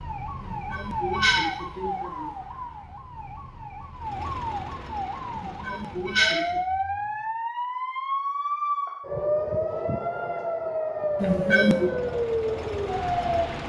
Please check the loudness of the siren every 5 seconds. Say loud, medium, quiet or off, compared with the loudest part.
medium, loud, loud.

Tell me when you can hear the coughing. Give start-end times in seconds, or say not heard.
0.4-2.3, 5.3-6.6, 11.2-11.9.